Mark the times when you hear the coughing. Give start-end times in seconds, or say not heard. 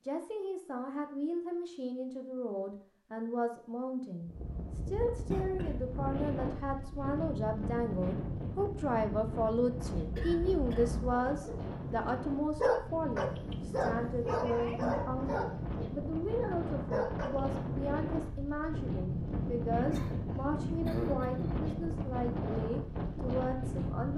5.2-6.3, 9.9-11.2, 19.9-21.7.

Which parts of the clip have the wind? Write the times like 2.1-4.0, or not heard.
4.2-24.1.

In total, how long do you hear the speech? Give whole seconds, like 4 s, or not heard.
24 s.